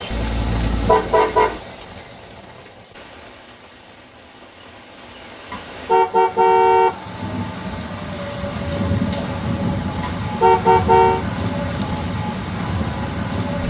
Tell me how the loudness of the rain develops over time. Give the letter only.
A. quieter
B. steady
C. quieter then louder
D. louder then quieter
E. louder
C.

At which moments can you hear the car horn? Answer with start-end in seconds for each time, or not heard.
0.1-1.6, 5.5-6.9, 10.0-11.2.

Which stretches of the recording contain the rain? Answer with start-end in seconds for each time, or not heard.
0.0-13.6.